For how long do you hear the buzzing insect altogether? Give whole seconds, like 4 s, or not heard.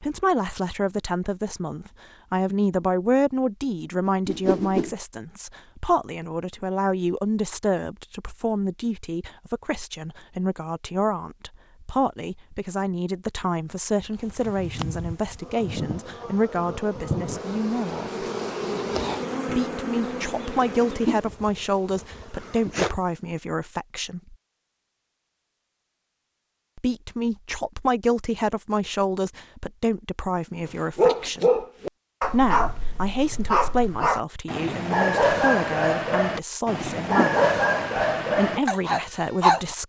9 s.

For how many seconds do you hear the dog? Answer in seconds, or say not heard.
9 s.